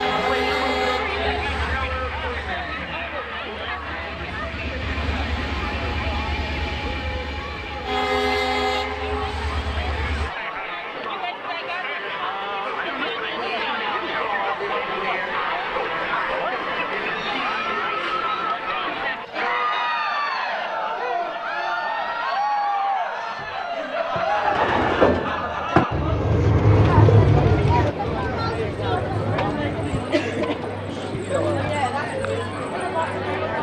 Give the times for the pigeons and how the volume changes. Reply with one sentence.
You can hear the pigeons from 24.1 to 31.6 s, getting quieter.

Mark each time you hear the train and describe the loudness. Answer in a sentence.
You can hear the train from 0.0 to 10.3 s, getting quieter then louder.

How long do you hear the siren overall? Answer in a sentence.
You can't hear the siren here.